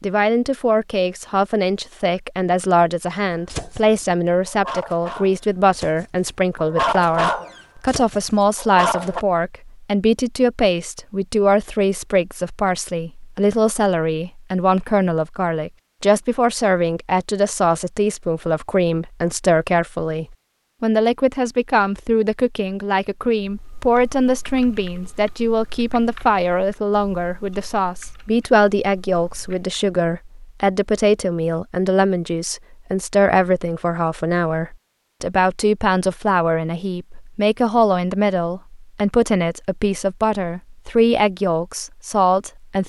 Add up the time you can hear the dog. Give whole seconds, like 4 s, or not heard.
6 s.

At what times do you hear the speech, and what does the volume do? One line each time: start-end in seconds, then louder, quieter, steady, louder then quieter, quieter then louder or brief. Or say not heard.
0.0-42.8 steady.